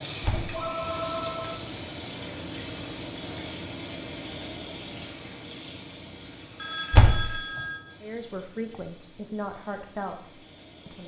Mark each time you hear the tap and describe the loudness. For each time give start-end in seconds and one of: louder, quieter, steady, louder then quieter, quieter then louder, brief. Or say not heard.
0.0-11.0 quieter.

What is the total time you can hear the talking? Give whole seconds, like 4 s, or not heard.
3 s.